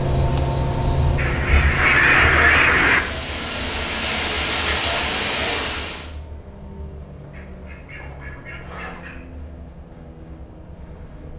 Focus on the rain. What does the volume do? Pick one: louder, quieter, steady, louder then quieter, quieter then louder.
louder.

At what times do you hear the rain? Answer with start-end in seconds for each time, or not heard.
0.0-6.1.